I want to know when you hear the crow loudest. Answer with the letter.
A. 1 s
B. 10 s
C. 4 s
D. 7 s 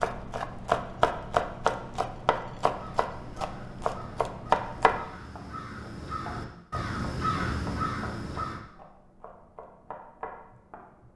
D.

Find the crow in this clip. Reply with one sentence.
The crow can be heard from 2.8 to 8.6 s.